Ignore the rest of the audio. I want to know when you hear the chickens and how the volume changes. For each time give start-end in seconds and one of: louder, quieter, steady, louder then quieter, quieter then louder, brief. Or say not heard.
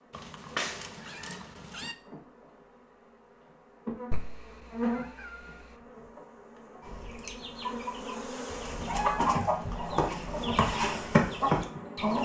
6.8-12.2 louder.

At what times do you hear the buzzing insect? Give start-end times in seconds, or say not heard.
0.0-12.2.